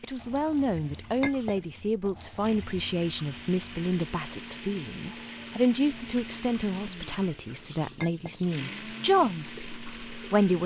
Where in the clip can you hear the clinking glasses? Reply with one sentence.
You can hear the clinking glasses from 1.2 to 1.6 s and from 8.0 to 8.4 s.